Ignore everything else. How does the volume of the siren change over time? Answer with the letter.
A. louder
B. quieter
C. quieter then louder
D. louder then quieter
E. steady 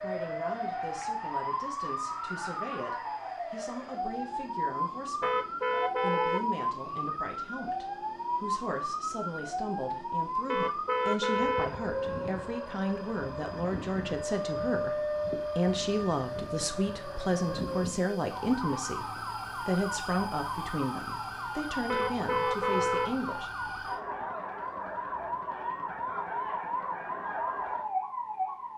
E.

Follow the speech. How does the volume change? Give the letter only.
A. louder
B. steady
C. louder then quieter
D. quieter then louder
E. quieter
A.